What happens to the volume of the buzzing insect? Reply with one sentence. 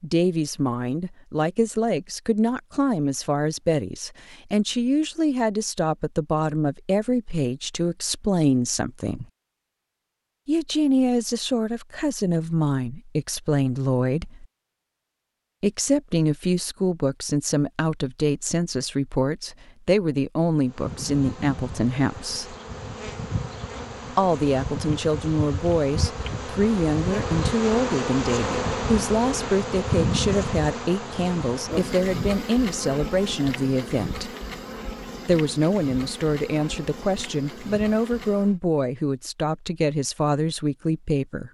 The loudness of the buzzing insect goes up, then down.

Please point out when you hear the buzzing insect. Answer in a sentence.
The buzzing insect can be heard from 20.6 to 38.6 s.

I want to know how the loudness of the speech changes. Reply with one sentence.
The loudness of the speech stays about the same.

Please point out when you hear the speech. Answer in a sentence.
The speech can be heard from 0.0 to 9.2 s, from 10.4 to 14.4 s, from 15.6 to 22.6 s, from 24.1 to 34.3 s and from 35.2 to 41.4 s.